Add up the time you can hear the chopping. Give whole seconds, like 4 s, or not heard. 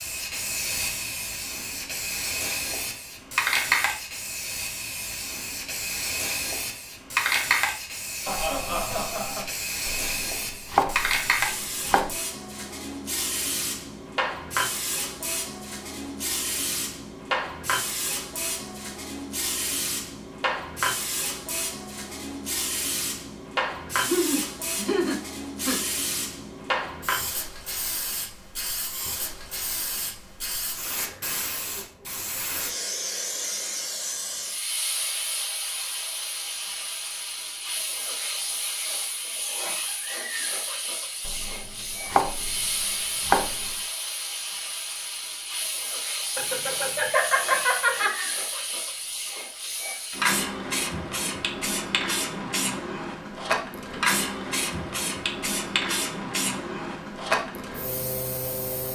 5 s.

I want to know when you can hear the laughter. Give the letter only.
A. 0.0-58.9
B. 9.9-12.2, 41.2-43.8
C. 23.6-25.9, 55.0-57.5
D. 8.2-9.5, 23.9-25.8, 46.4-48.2
D.